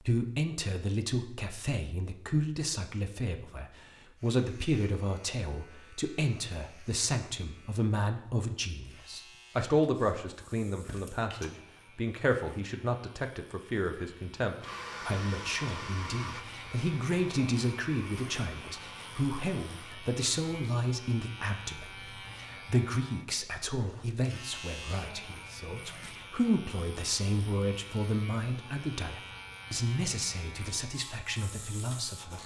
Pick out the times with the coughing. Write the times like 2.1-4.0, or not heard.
10.8-11.5.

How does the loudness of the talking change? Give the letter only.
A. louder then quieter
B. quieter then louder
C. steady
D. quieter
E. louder
C.